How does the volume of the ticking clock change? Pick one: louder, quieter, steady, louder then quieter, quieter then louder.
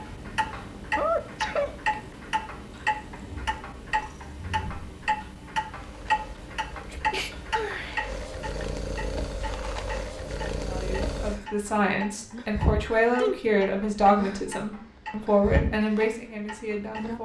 quieter.